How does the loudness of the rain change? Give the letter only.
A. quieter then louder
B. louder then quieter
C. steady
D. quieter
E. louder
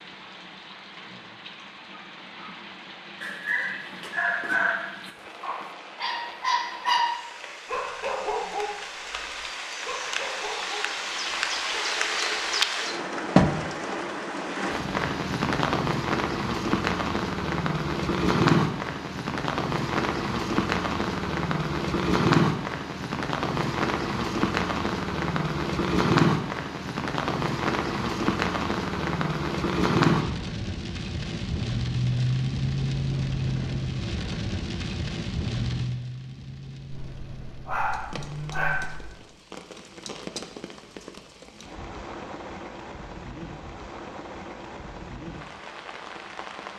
B.